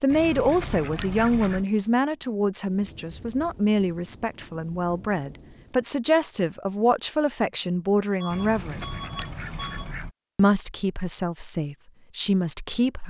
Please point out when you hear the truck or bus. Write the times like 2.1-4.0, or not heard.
8.2-9.9.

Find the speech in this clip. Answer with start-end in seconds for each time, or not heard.
0.0-8.8, 10.3-13.0.